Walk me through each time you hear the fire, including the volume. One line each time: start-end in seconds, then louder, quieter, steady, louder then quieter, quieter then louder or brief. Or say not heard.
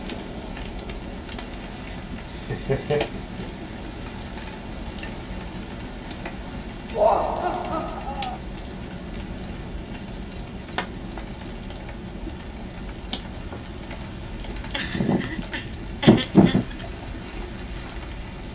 0.0-18.5 steady.